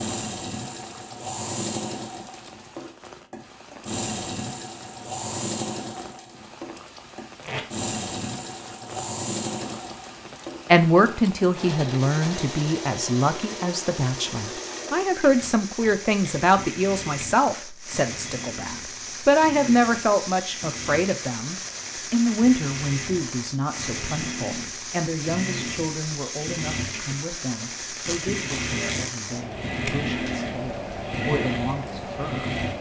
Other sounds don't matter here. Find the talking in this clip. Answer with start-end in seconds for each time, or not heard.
10.7-32.5.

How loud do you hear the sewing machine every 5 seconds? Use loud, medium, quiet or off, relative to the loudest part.
loud, loud, medium, medium, medium, loud, loud.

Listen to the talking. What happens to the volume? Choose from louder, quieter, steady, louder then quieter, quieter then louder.
quieter.